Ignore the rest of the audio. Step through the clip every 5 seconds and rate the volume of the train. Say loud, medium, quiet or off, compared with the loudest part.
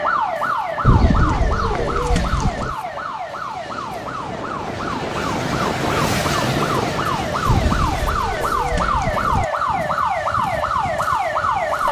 medium, loud, quiet.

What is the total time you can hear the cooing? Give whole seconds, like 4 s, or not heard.
4 s.